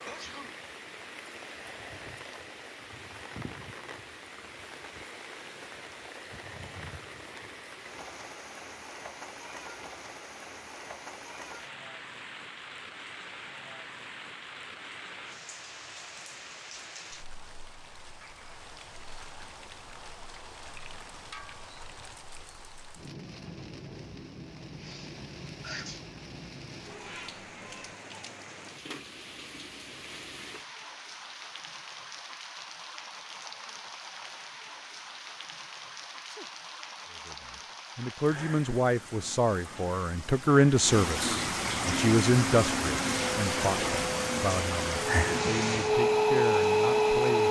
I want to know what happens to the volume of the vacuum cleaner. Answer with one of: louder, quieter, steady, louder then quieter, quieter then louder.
louder.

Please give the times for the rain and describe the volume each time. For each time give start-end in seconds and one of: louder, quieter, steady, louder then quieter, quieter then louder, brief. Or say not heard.
0.0-47.4 louder.